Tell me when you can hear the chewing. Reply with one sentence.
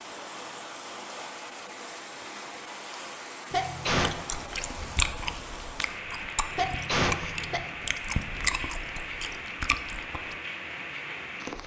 The chewing can be heard from 4.0 to 10.3 s.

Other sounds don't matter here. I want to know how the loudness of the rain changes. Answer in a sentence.
The volume of the rain stays about the same.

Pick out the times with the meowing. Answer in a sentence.
You can't hear the meowing here.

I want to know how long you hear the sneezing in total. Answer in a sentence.
You can hear the sneezing for 2 seconds altogether.